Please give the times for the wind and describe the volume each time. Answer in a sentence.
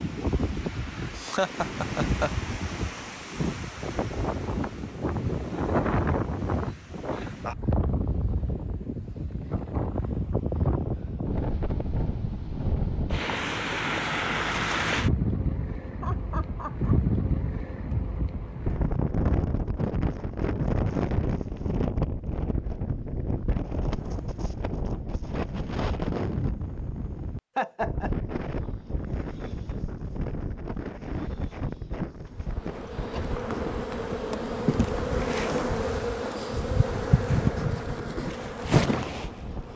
You can hear the wind from 0.0 to 39.7 s, getting quieter.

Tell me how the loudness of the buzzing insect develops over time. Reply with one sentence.
The loudness of the buzzing insect goes up.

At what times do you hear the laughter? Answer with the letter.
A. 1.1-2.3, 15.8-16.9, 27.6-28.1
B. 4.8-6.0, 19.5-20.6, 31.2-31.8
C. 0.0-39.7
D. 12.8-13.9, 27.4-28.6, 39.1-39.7
A.